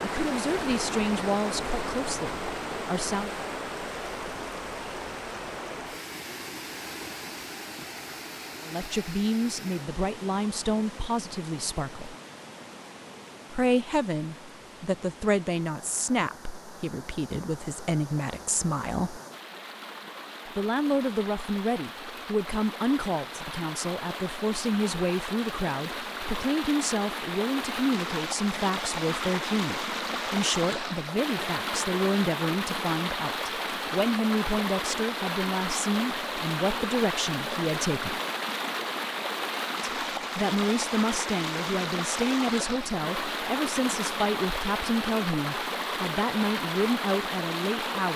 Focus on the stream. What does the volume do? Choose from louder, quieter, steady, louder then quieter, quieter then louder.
quieter then louder.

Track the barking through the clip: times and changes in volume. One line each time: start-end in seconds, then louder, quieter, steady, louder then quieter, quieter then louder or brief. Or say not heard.
not heard.